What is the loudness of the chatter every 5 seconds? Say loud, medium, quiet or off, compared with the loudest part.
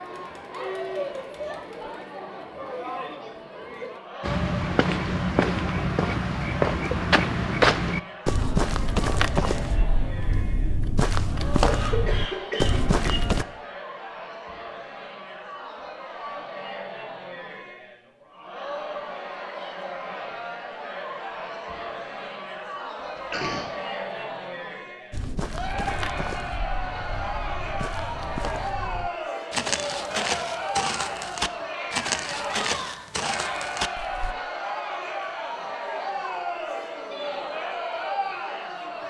loud, medium, medium, medium, loud, loud, loud, loud.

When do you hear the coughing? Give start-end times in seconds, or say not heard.
11.7-13.2, 23.1-23.7.